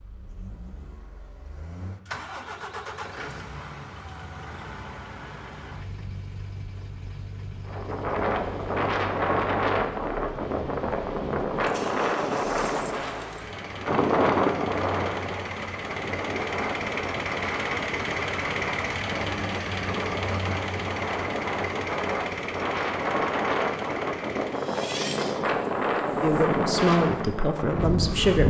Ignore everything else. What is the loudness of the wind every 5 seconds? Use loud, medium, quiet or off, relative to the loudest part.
off, loud, loud, medium, loud, loud.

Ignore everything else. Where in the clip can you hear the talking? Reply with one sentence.
The talking can be heard from 26.2 to 28.4 s.